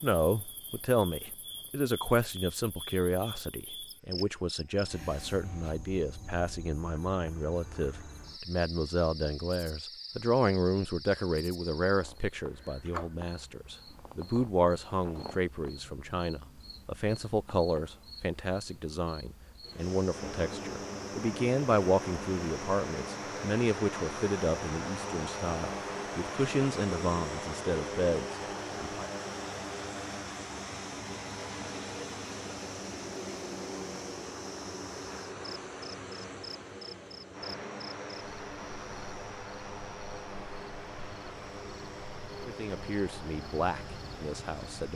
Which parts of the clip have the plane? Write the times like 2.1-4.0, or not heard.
19.6-44.9.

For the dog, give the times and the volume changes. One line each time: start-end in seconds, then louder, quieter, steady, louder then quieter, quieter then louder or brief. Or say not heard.
not heard.